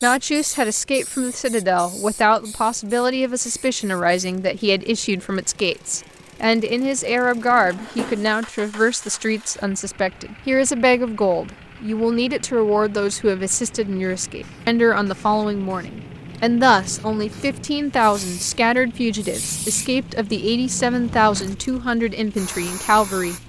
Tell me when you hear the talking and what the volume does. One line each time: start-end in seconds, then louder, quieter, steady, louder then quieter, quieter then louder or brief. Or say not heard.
0.0-23.4 steady.